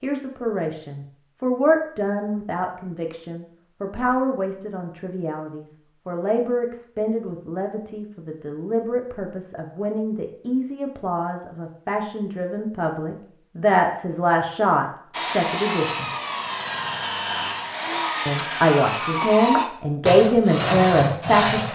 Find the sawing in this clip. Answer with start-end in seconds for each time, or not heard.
15.1-21.7.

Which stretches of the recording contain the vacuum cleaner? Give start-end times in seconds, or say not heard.
not heard.